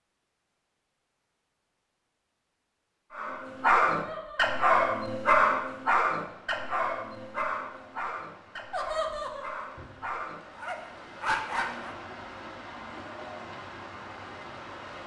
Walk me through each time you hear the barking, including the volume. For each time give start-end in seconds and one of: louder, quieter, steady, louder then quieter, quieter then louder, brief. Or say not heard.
3.1-11.9 quieter then louder.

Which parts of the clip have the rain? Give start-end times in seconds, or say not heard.
6.2-15.0.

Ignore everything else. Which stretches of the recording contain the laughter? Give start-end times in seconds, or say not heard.
3.9-4.6, 8.7-9.7.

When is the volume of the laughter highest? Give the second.
9 s.